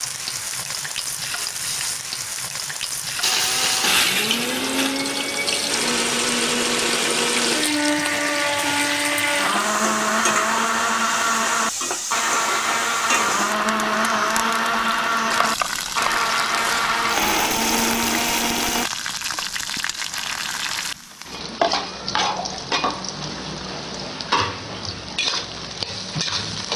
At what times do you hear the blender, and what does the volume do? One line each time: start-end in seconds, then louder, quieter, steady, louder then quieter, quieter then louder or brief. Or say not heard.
3.2-18.9 steady.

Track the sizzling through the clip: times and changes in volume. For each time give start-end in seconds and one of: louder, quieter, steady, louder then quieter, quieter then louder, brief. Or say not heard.
0.0-26.7 steady.